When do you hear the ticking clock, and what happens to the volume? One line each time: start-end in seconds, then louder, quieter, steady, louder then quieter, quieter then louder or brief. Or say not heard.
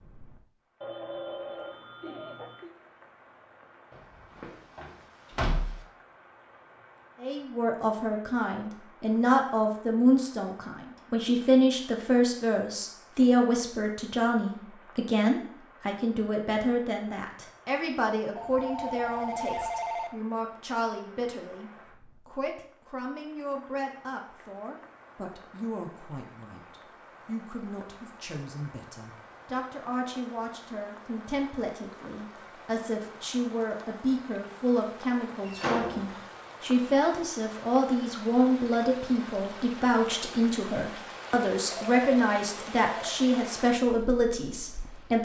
not heard.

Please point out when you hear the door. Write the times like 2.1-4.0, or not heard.
4.3-5.8, 35.5-36.2.